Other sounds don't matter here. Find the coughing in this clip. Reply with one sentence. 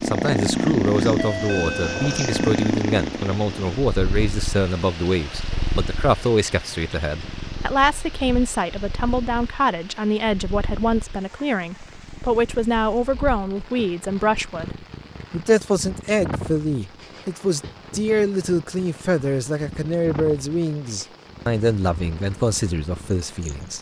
The coughing can't be heard in this clip.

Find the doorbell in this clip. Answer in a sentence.
The doorbell can be heard from 1.1 to 2.6 s.